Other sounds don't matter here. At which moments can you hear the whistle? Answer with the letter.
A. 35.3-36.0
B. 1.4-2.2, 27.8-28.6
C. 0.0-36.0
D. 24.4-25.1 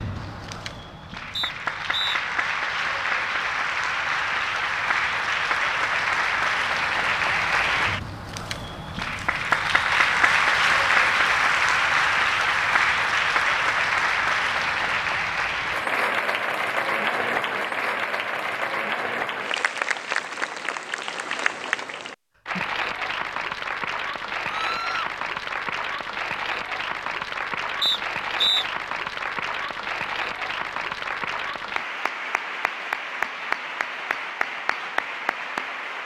B.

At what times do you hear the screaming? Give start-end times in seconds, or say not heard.
24.4-25.1.